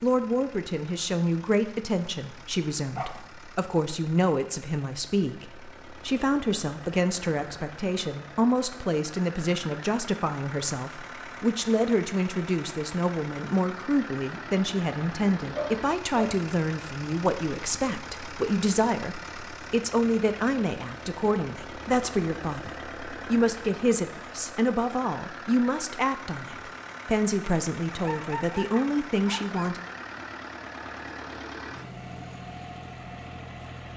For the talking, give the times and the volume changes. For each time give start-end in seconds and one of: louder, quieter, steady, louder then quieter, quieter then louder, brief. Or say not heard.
0.0-29.8 steady.